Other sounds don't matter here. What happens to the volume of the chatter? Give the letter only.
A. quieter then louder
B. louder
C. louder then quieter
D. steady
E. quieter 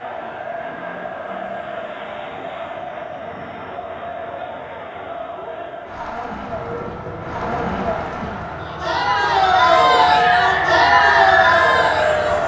B.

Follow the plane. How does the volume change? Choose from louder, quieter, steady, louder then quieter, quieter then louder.
quieter then louder.